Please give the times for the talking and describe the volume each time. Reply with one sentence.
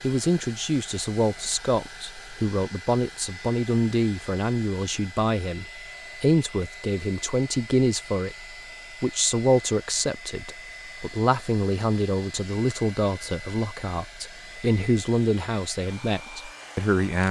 You can hear the talking from 0.0 to 17.2 s, at a steady volume.